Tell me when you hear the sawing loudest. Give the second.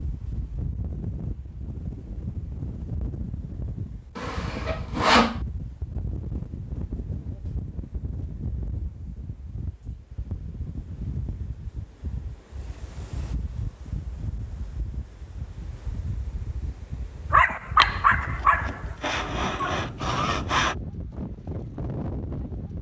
5 s.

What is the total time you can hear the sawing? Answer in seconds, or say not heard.
4 s.